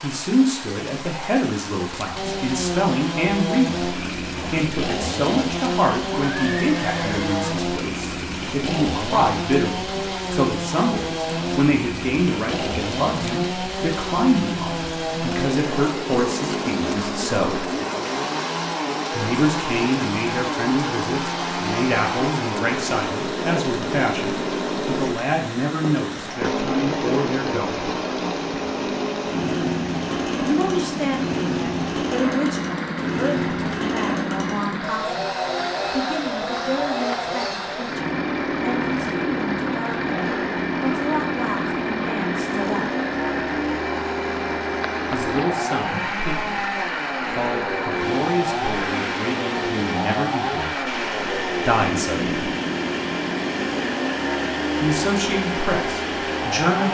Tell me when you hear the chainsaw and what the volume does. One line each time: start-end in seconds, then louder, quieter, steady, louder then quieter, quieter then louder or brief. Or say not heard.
2.1-56.8 steady.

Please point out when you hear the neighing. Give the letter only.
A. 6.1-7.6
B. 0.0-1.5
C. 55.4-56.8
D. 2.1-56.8
A.